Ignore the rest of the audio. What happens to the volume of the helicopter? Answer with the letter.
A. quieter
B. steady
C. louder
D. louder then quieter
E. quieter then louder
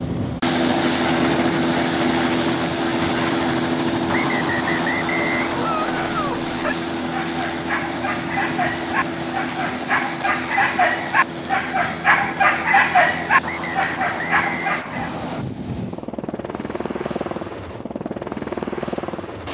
A.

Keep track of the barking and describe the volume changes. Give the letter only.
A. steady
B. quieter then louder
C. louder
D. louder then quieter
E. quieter
C.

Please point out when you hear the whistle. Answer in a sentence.
You can hear the whistle from 4.0 to 6.0 s and from 13.4 to 15.4 s.